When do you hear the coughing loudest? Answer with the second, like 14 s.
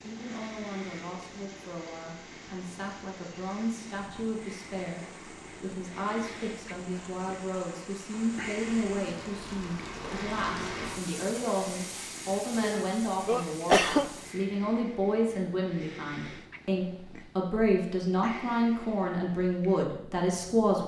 14 s.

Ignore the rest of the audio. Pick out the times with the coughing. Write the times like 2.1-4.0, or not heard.
12.6-14.1.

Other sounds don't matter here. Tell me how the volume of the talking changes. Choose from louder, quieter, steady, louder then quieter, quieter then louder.
louder.